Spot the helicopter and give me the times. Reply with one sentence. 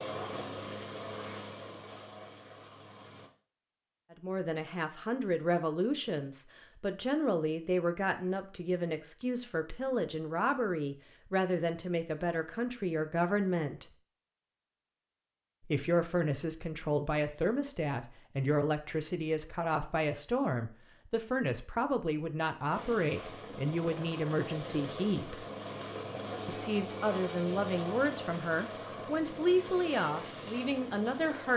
You can hear the helicopter from 0.0 to 3.3 s and from 22.7 to 31.5 s.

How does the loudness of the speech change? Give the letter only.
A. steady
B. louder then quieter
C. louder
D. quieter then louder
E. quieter
A.